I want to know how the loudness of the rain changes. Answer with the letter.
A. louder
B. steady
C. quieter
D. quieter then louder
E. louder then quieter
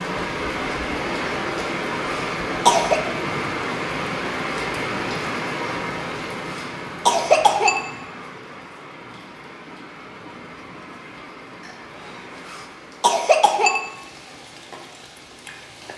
C.